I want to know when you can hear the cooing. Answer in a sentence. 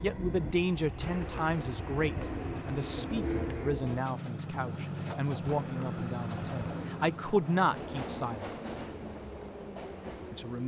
The cooing can be heard from 1.0 to 3.8 s and from 5.4 to 7.2 s.